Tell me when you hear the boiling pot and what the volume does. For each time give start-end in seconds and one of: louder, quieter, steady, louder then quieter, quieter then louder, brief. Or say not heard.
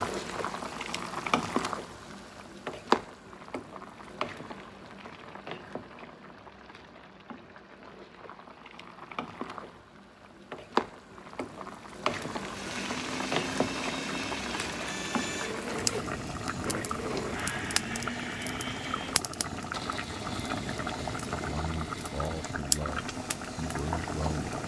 0.0-24.6 quieter then louder.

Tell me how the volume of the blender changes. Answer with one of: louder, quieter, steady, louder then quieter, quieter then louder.
quieter.